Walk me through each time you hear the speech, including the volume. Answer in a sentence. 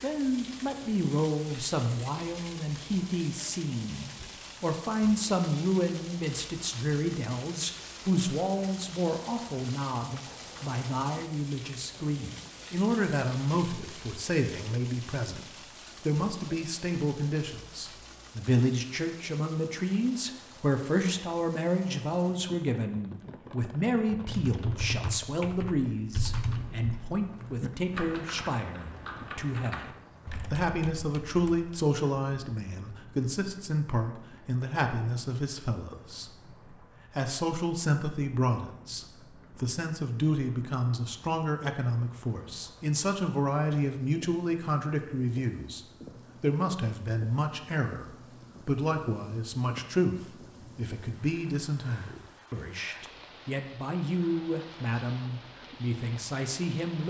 The speech can be heard from 0.0 to 57.0 s, at a steady volume.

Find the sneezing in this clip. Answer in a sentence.
The sneezing can't be heard in this clip.